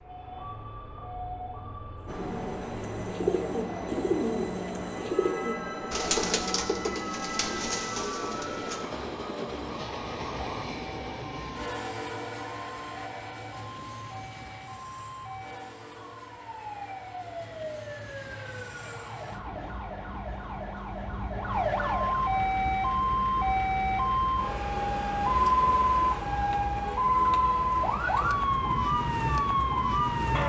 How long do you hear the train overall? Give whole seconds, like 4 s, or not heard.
28 s.